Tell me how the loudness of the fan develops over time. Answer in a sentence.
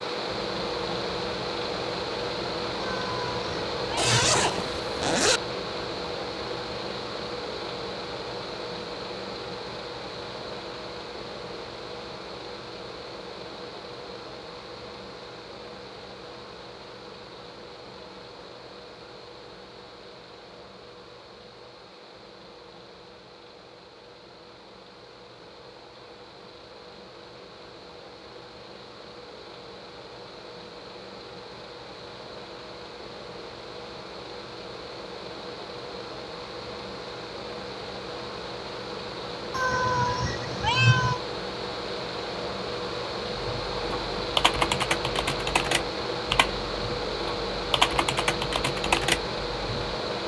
The volume of the fan goes down, then up.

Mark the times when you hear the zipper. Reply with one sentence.
The zipper can be heard from 4.0 to 5.4 s.